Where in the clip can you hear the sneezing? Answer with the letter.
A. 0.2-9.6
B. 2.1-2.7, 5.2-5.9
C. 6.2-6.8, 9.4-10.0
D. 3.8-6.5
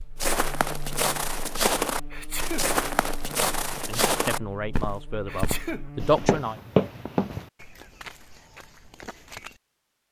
B.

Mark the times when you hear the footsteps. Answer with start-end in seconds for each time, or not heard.
0.2-9.6.